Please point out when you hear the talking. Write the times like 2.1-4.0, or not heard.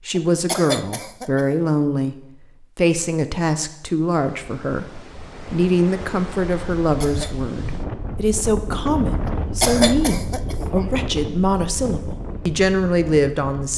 0.1-13.7.